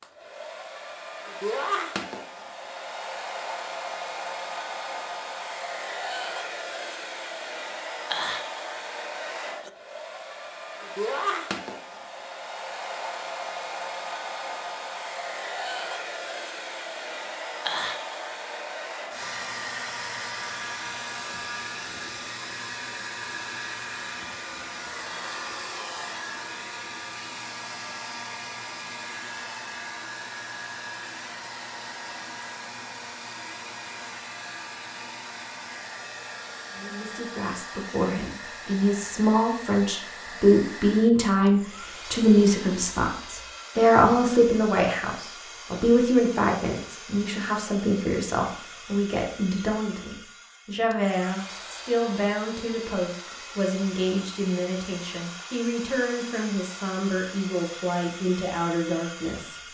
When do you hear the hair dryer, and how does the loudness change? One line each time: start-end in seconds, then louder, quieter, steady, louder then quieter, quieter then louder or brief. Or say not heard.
0.0-59.7 quieter.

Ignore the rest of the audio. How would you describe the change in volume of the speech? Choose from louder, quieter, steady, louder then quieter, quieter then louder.
quieter.